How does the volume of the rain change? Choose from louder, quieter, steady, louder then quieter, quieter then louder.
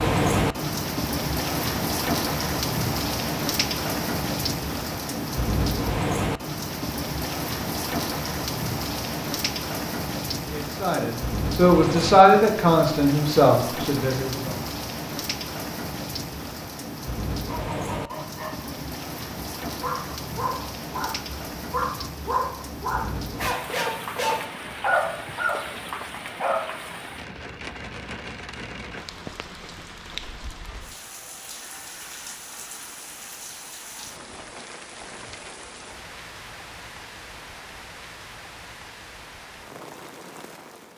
quieter.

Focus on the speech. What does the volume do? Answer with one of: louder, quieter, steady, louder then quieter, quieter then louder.
louder then quieter.